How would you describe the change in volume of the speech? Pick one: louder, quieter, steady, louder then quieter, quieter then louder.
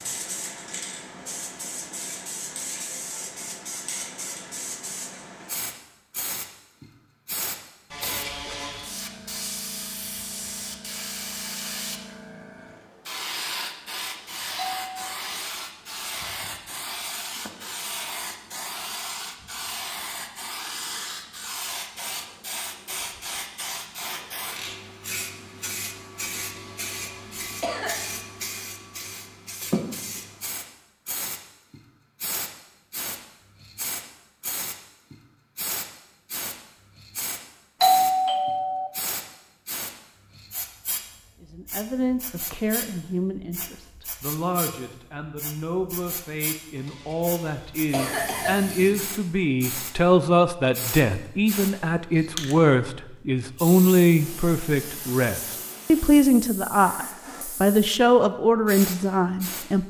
louder.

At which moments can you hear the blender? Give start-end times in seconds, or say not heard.
not heard.